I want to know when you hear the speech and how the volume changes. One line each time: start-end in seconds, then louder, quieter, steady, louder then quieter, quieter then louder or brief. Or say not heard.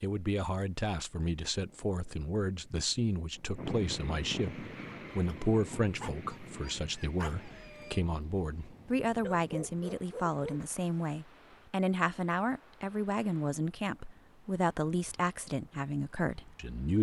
0.0-16.9 steady.